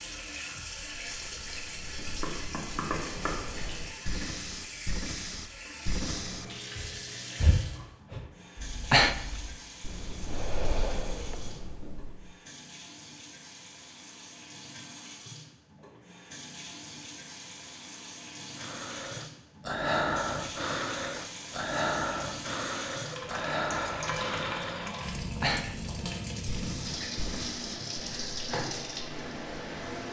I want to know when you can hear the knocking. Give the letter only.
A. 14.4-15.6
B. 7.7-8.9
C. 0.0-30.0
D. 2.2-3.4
D.